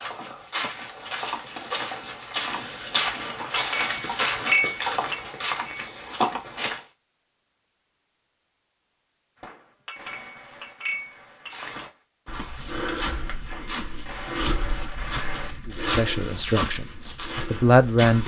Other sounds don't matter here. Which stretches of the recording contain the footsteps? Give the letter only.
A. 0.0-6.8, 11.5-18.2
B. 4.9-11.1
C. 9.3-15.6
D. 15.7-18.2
A.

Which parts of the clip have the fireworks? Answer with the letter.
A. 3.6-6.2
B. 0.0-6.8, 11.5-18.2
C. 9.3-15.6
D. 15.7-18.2
C.